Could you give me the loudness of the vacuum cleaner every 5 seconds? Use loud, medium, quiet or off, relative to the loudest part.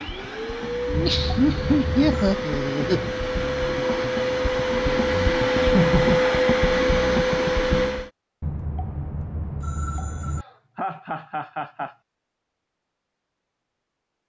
medium, loud, off.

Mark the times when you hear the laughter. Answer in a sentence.
You can hear the laughter from 0.8 to 3.1 s, from 5.6 to 6.3 s and from 10.4 to 11.9 s.